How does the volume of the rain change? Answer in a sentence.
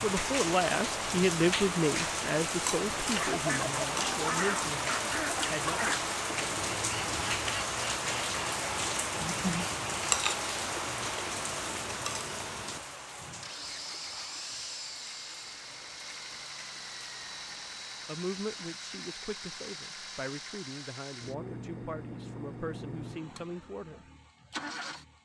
The loudness of the rain goes down.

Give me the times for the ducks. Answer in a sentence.
You can hear the ducks from 3.0 to 10.2 s.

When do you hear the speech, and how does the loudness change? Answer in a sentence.
You can hear the speech from 0.0 to 6.0 s, getting quieter; and from 18.1 to 24.1 s, at a steady volume.